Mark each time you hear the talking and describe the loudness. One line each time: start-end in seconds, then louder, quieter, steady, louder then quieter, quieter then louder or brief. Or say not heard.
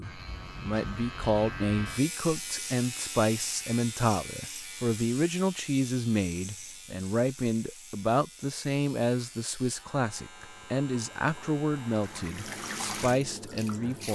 0.0-14.1 steady.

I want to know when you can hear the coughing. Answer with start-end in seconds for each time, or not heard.
not heard.